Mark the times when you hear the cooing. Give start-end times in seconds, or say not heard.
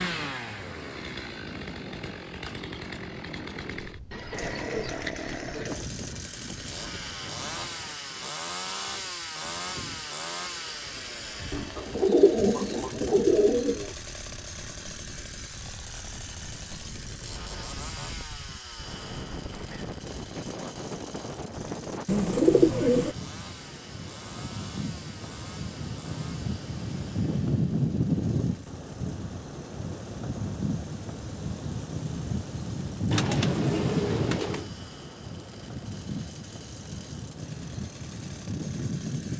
4.1-5.8, 11.5-13.9, 22.1-23.1, 33.1-34.6.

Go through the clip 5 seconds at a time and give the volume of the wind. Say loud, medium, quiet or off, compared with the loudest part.
quiet, quiet, quiet, quiet, medium, loud, loud, medium.